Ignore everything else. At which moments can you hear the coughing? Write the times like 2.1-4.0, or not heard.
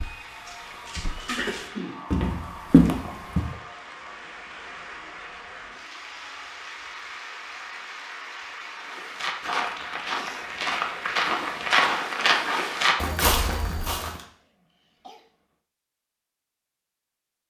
1.2-2.1, 14.2-15.3.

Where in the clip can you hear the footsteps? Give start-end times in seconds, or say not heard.
0.0-3.5, 8.8-14.2.